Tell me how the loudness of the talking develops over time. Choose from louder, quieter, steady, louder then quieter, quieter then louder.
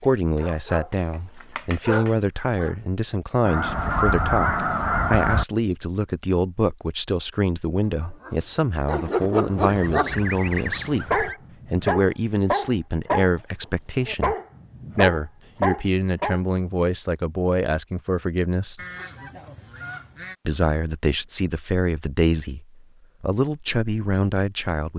steady.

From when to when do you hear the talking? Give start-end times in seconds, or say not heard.
0.0-14.3, 14.9-18.8, 20.4-24.9.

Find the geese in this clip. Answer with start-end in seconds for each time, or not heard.
3.5-5.5, 9.6-11.4, 18.8-20.4.